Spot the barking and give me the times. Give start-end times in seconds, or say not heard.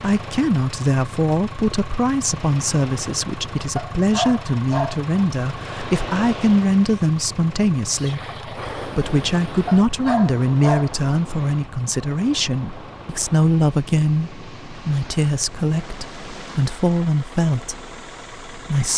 3.8-5.0, 9.7-10.9.